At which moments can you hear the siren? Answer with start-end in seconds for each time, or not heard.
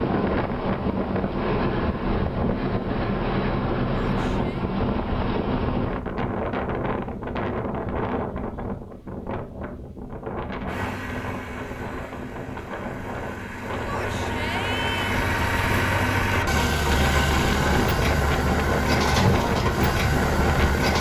not heard.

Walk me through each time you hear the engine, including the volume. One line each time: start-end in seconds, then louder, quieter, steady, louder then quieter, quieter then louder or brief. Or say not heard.
10.7-20.9 louder.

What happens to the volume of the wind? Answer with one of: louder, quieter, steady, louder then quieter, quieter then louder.
quieter then louder.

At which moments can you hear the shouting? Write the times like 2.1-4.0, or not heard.
3.9-4.7, 13.8-15.2.